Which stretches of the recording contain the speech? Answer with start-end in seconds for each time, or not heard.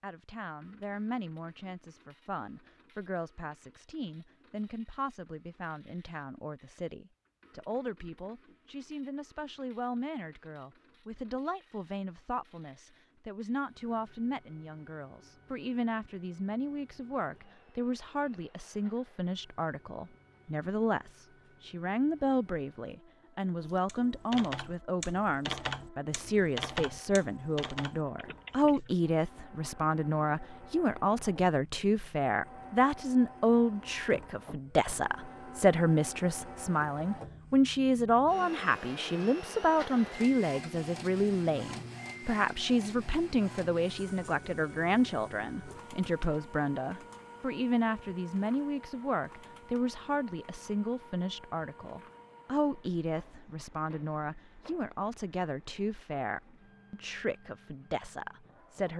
0.0-58.9.